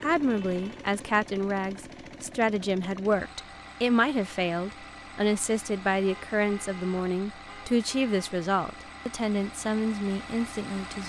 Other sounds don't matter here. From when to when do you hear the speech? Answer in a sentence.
You can hear the speech from 0.0 to 11.0 s.